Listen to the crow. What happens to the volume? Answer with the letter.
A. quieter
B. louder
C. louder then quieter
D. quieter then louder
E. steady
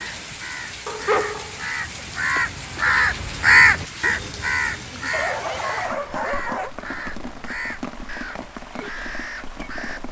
C.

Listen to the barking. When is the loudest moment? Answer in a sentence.
The loudest moment of the barking is at 1 second.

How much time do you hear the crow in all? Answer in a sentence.
The crow can be heard for 10 seconds in total.